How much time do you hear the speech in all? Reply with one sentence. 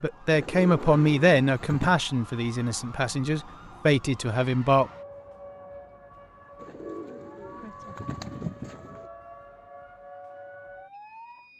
You can hear the speech for 5 seconds altogether.